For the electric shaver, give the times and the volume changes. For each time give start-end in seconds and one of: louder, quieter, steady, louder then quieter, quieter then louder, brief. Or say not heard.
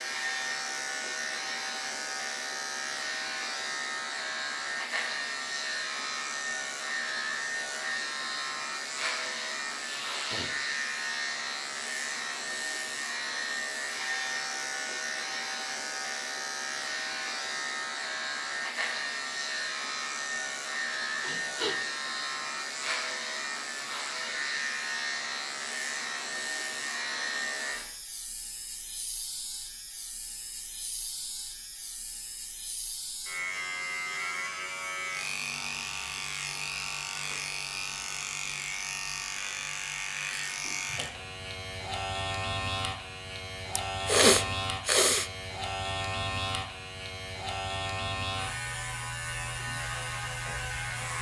0.0-51.1 steady.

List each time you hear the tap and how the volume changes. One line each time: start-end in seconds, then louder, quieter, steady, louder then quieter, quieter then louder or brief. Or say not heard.
not heard.